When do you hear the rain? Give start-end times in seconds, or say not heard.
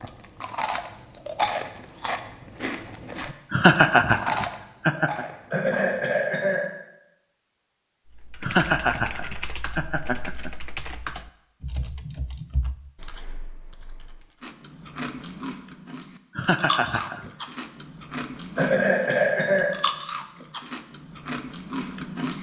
not heard.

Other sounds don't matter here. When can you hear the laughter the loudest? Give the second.
4 s.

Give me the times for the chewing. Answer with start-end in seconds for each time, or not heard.
0.0-6.0, 14.4-22.3.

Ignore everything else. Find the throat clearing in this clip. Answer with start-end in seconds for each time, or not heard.
5.5-6.7, 18.6-19.7.